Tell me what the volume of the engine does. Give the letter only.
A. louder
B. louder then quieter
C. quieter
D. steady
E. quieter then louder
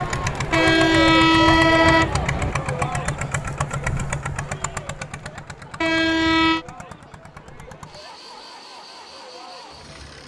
C.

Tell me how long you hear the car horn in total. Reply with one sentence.
The car horn can be heard for 3 seconds in total.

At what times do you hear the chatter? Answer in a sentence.
The chatter can be heard from 0.0 to 10.2 s.